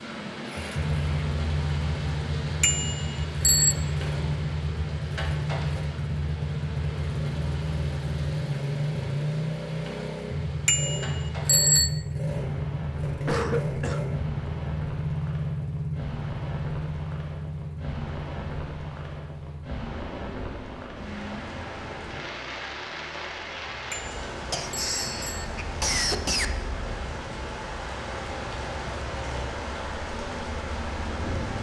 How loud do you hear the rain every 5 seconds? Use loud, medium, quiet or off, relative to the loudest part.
loud, medium, medium, medium, loud, loud, loud.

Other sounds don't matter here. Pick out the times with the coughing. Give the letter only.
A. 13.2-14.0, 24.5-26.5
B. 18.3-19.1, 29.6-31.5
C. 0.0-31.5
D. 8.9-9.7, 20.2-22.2
A.